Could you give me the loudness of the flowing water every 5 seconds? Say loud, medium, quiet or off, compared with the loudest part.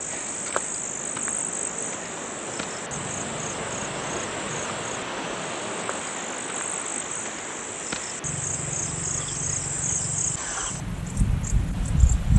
loud, loud, medium.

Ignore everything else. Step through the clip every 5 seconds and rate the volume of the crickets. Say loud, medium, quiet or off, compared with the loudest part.
medium, medium, loud.